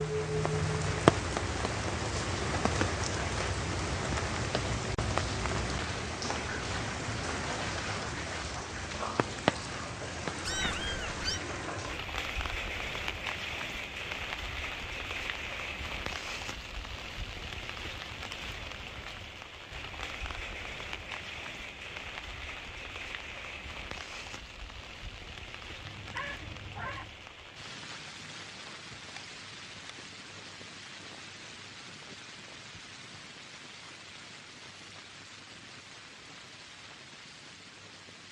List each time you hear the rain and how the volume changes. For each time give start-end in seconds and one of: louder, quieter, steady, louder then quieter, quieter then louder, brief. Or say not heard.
0.0-38.2 quieter.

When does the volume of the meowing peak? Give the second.
11 s.